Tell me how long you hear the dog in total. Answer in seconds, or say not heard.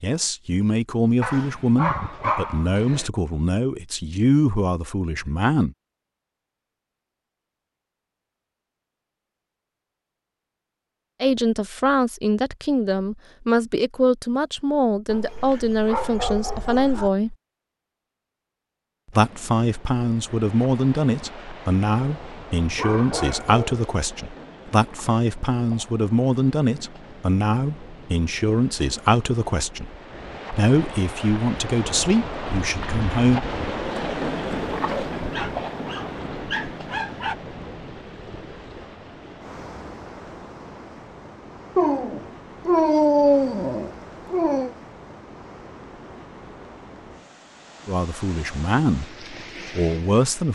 10 s.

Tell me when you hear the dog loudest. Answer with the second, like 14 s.
43 s.